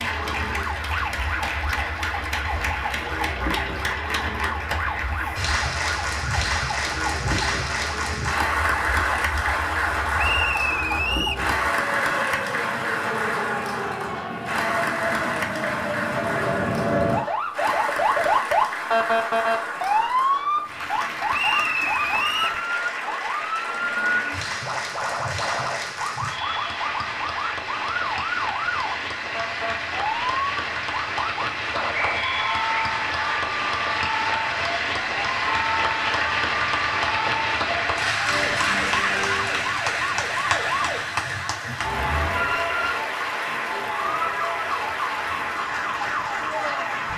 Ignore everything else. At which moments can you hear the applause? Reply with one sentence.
You can hear the applause from 0.0 to 47.1 s.